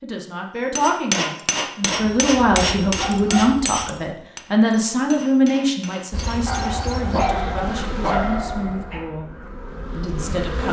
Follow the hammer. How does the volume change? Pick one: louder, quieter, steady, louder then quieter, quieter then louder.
quieter.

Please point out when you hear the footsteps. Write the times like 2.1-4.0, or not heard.
not heard.